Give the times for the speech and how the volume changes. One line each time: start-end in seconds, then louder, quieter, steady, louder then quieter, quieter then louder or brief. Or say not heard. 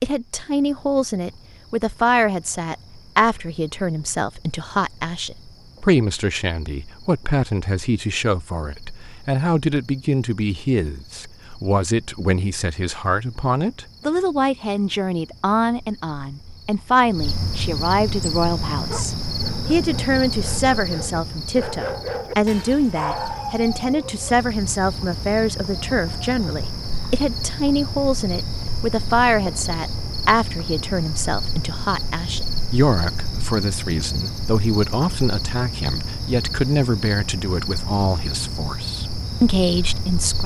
0.0-40.4 steady.